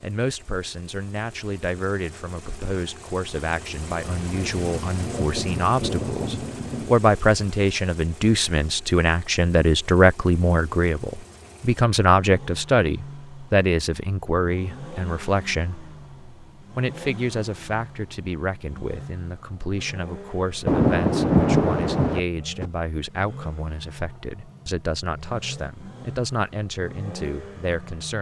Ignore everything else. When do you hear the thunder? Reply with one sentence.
The thunder can be heard from 4.2 to 7.0 s and from 20.6 to 22.6 s.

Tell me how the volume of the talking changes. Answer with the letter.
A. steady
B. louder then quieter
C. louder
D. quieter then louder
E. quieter
B.